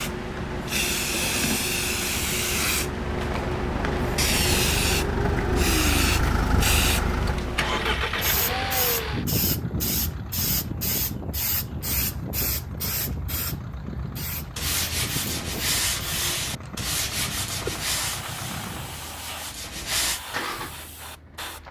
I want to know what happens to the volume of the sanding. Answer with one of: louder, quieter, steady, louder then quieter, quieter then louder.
quieter.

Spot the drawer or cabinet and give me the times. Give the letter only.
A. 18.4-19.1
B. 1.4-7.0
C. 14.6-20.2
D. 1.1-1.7
D.